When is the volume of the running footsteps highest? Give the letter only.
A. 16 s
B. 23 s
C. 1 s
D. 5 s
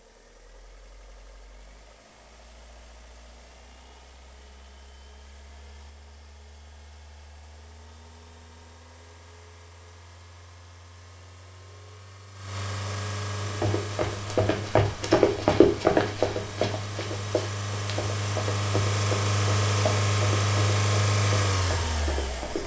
A.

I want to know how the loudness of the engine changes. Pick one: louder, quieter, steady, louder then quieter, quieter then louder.
louder.